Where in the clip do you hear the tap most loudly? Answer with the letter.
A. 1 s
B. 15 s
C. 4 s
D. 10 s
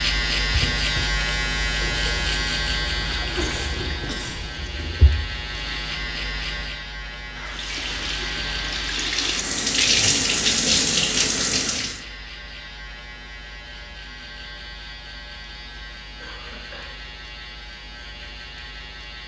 D.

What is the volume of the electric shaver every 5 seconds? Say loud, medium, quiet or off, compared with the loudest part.
loud, medium, quiet, quiet.